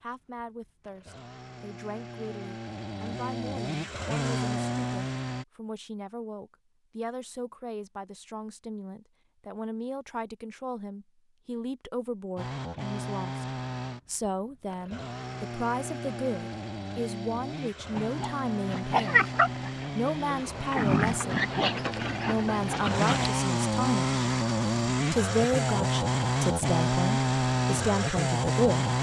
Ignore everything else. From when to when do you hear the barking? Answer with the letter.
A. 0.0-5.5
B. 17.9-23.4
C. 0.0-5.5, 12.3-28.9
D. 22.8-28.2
B.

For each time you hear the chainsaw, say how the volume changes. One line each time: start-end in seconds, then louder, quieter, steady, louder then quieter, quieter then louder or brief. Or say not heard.
0.0-5.5 louder
12.3-28.9 louder.